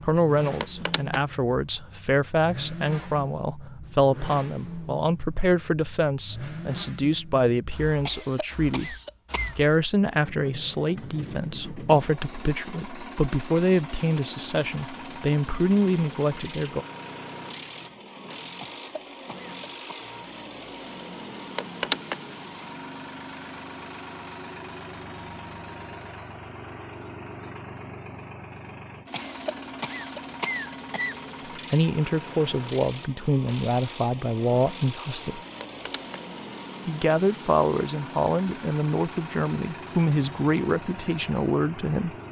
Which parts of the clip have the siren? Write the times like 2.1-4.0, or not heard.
not heard.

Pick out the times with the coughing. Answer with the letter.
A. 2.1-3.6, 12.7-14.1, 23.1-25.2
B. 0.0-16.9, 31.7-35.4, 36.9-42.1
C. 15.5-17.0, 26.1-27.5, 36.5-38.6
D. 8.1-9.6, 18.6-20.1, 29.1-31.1
D.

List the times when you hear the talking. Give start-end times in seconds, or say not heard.
0.0-16.9, 31.7-35.4, 36.9-42.1.